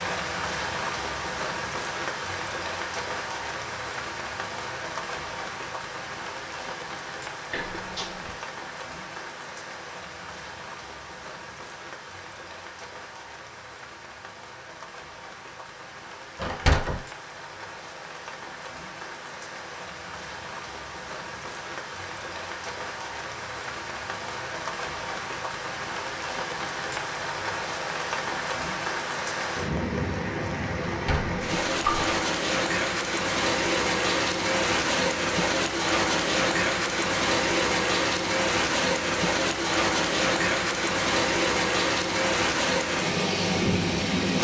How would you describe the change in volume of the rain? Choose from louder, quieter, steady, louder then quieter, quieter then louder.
quieter then louder.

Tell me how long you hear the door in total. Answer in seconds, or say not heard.
3 s.